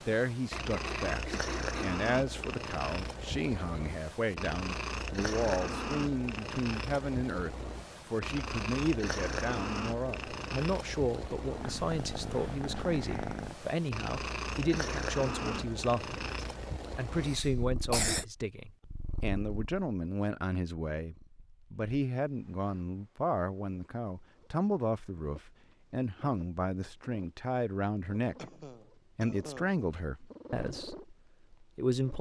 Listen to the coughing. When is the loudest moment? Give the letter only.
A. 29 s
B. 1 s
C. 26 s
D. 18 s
D.